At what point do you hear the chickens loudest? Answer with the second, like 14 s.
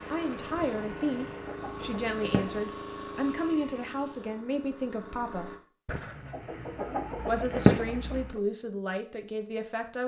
8 s.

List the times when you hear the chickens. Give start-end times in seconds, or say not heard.
0.6-2.6, 5.8-8.4.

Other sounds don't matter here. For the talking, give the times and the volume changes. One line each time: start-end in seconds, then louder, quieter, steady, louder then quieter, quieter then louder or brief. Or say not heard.
0.1-5.6 steady
7.2-10.0 brief.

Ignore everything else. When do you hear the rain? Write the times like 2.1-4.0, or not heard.
not heard.